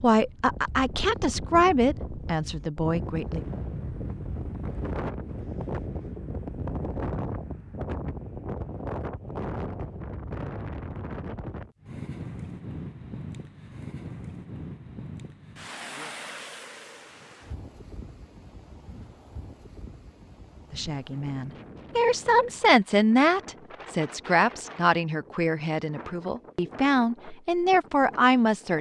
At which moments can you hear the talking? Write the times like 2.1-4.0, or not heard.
0.0-3.5, 20.7-28.7.